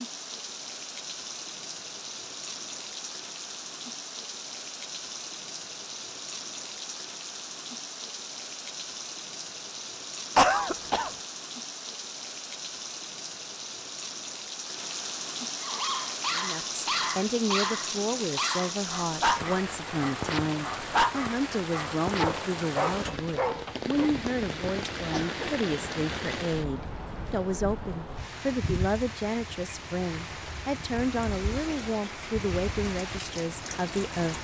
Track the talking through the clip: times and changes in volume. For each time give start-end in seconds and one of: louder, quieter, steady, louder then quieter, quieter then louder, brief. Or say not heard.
16.3-34.3 steady.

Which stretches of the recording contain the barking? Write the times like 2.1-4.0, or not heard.
15.6-24.1.